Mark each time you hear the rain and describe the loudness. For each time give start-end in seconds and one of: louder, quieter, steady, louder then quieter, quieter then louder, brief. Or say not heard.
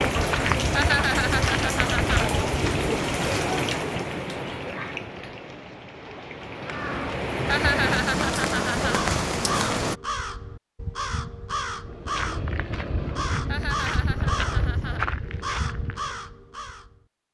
0.0-9.9 quieter then louder.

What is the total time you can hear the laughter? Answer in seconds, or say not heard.
5 s.